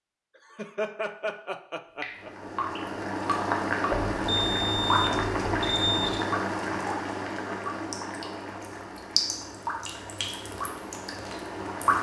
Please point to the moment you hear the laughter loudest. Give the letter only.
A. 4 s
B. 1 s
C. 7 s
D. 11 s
B.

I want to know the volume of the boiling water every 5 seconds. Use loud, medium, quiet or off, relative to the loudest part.
loud, loud, medium.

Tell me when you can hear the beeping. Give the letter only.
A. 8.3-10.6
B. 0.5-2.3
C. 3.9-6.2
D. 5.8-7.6
C.